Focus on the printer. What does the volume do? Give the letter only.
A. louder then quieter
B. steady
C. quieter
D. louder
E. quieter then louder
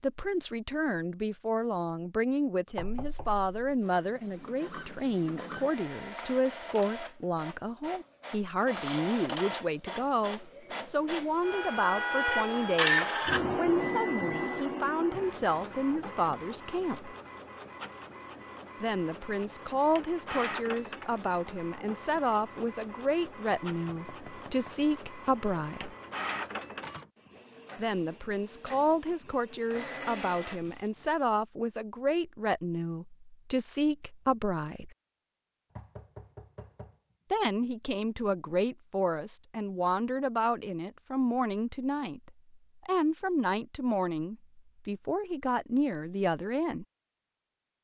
A.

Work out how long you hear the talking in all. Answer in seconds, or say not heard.
41 s.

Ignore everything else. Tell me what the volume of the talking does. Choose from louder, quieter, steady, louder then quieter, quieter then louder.
steady.